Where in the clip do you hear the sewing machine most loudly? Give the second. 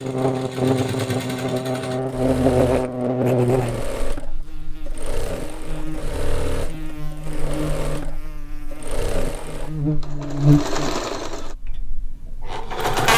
13 s.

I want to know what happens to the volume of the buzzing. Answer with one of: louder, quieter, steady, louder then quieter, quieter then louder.
quieter then louder.